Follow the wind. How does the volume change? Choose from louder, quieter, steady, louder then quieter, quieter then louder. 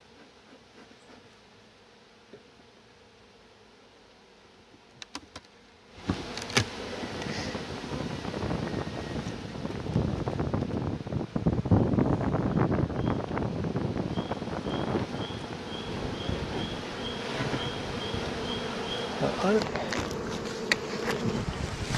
louder then quieter.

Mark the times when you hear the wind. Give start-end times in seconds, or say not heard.
7.0-21.9.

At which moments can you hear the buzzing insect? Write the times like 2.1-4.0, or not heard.
0.0-21.9.